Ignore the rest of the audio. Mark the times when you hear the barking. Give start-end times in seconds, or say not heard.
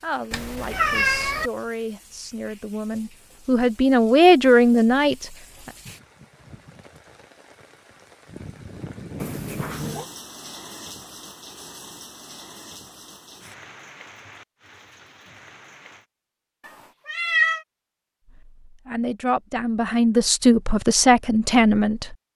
not heard.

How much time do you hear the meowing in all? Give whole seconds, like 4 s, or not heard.
3 s.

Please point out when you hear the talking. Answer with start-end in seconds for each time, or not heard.
0.0-5.2, 18.6-22.1.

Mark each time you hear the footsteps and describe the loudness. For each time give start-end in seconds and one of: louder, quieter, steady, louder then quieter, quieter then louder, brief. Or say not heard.
not heard.